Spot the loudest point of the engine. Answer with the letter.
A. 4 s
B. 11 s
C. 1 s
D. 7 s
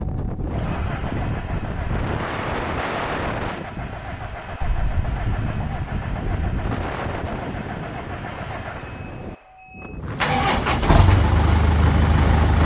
B.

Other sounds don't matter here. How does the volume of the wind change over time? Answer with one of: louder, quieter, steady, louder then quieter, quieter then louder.
quieter then louder.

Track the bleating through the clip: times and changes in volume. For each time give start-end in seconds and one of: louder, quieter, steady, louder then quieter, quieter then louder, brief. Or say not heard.
not heard.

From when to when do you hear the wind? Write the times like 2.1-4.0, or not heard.
0.0-12.6.